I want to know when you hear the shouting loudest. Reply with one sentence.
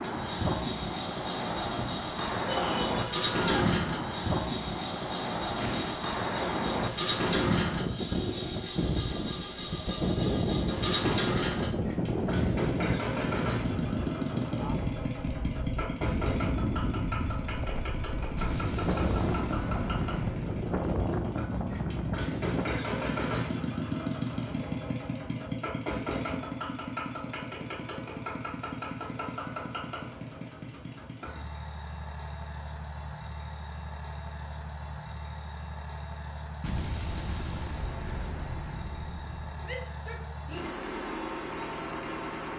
The volume of the shouting peaks at 3 seconds.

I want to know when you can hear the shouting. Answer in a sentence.
The shouting can be heard from 2.5 to 3.8 s and from 39.6 to 40.8 s.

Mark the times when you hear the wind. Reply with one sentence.
The wind can be heard from 0.0 to 22.8 s.